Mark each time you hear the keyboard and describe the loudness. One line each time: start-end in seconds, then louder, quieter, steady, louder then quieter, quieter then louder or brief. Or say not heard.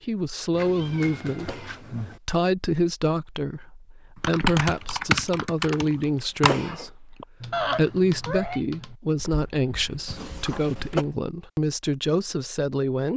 4.2-11.1 quieter.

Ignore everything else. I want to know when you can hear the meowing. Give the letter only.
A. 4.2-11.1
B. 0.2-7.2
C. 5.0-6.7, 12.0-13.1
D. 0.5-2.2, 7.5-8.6
D.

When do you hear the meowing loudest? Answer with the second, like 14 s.
8 s.